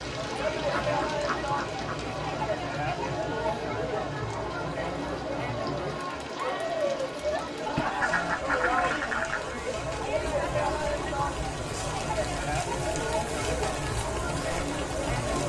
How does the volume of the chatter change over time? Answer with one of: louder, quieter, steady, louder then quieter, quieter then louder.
steady.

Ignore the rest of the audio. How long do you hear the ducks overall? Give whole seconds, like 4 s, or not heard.
4 s.